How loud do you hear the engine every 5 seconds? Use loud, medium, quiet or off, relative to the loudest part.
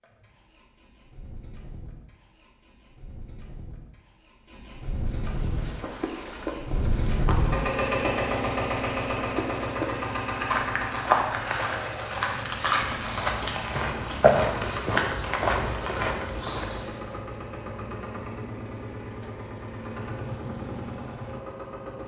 quiet, loud, medium, medium, medium.